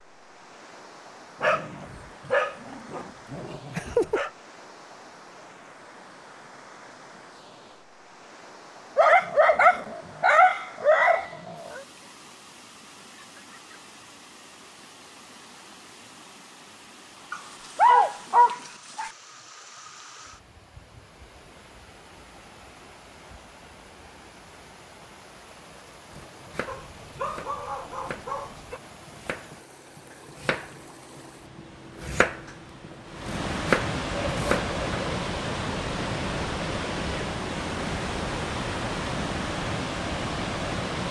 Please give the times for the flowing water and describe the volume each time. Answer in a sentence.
You can hear the flowing water from 0.0 to 41.0 s, getting louder.